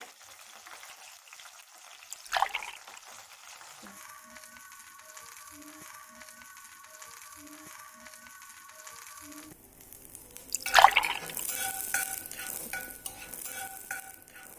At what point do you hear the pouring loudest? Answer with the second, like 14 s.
11 s.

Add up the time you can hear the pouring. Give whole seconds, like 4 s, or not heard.
2 s.